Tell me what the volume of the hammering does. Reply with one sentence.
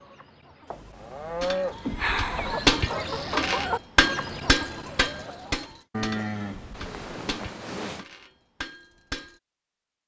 The volume of the hammering goes down.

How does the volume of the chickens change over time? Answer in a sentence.
The loudness of the chickens goes up, then down.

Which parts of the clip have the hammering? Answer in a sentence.
You can hear the hammering from 1.4 to 9.3 s.